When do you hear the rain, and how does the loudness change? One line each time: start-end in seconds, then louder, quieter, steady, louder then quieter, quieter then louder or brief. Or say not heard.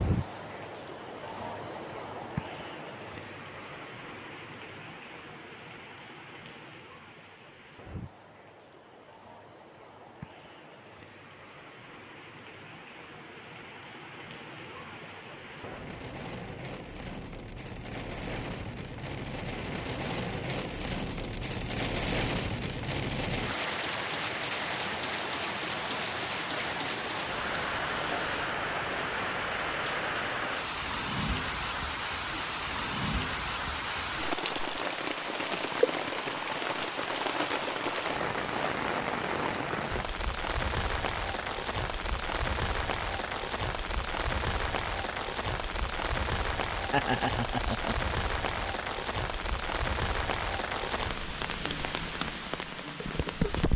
0.0-53.7 louder.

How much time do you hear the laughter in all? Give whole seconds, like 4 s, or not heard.
2 s.